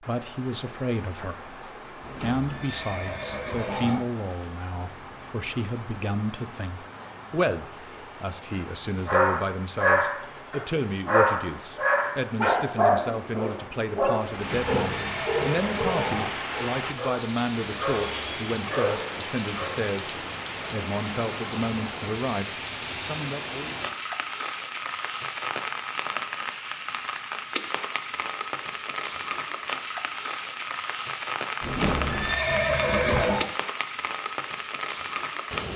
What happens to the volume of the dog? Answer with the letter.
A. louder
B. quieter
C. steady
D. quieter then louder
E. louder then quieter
B.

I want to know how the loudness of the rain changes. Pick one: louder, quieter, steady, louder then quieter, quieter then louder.
louder.